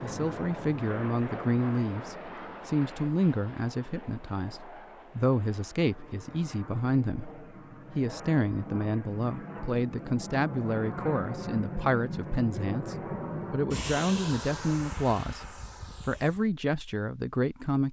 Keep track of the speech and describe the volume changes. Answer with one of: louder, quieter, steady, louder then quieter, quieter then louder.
steady.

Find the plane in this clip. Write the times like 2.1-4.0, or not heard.
0.0-16.4.